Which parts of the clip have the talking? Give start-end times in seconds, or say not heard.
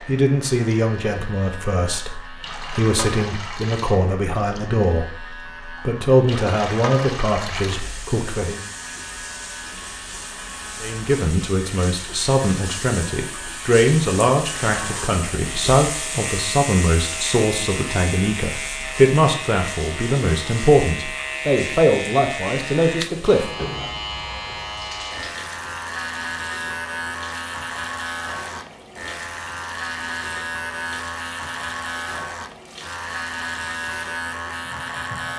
0.1-8.6, 10.8-23.9.